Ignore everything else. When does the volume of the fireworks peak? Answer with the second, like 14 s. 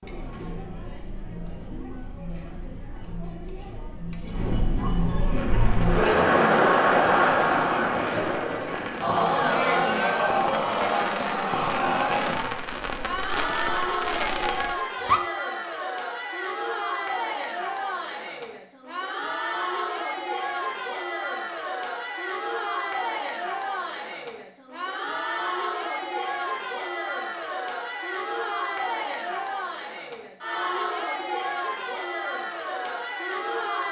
15 s.